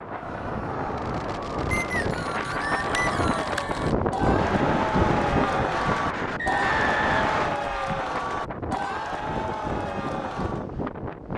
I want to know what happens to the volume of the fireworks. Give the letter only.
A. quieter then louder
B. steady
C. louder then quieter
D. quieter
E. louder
E.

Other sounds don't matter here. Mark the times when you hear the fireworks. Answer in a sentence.
The fireworks can be heard from 0.9 to 7.5 s.